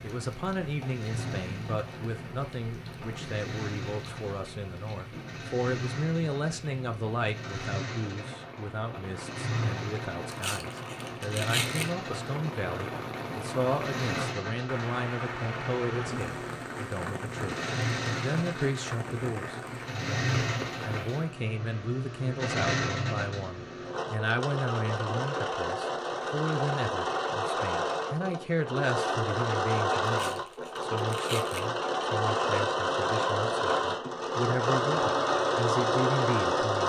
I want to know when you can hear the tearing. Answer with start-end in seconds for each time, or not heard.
10.3-11.9, 30.1-31.7.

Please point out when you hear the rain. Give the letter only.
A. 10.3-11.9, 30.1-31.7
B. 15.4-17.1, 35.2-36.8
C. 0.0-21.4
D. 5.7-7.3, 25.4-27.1
C.